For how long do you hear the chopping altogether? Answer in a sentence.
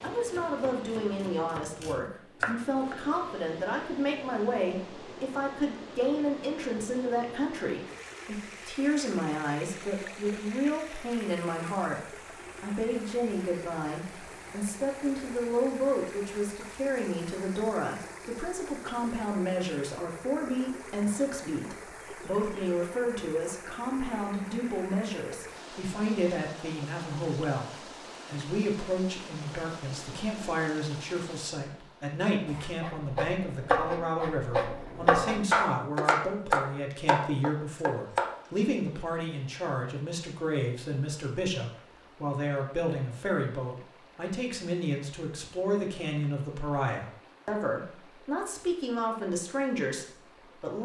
You can hear the chopping for 9 seconds altogether.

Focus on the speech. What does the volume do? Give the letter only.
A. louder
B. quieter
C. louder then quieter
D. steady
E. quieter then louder
D.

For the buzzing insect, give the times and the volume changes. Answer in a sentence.
The buzzing insect can't be heard in this clip.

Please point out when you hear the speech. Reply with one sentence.
The speech can be heard from 0.0 to 50.7 s.